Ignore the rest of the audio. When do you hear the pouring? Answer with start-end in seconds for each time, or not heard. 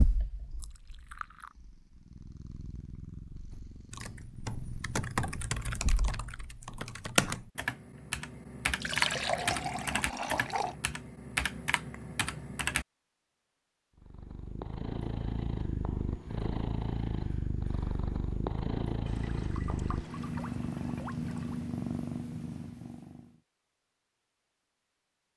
0.6-1.6, 8.8-10.8, 19.1-21.6.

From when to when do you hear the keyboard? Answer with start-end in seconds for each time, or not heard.
3.5-12.8.